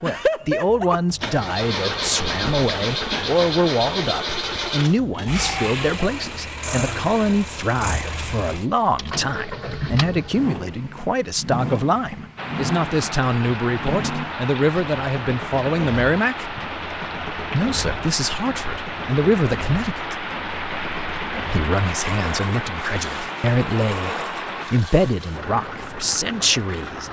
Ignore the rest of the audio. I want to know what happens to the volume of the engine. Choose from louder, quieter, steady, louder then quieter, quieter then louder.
quieter.